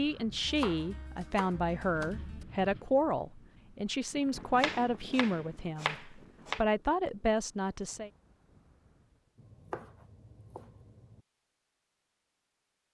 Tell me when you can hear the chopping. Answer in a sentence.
The chopping can be heard from 0.4 to 2.5 s, from 4.5 to 6.6 s and from 9.3 to 11.2 s.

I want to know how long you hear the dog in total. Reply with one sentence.
The dog can't be heard in this clip.